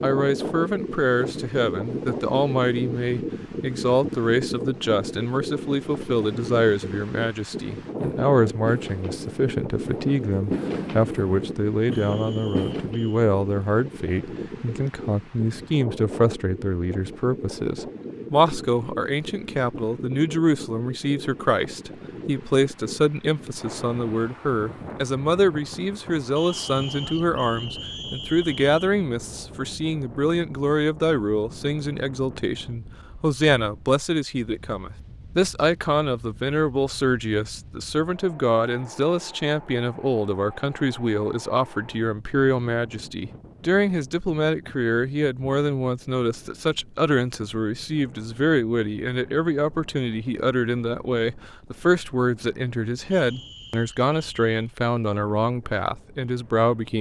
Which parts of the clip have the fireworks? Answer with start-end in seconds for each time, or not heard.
8.0-13.0.